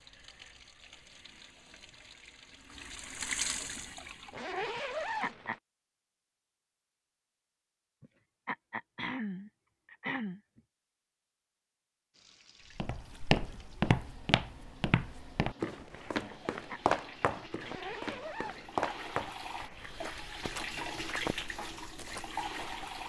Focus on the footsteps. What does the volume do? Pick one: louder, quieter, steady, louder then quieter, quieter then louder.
quieter.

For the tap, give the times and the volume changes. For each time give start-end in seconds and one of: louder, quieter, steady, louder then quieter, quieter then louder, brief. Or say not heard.
0.0-5.3 louder then quieter
12.1-23.0 louder.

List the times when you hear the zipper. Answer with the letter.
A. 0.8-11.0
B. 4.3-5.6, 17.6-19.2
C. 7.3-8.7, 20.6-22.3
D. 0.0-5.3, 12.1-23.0
B.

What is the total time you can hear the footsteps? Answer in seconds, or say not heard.
10 s.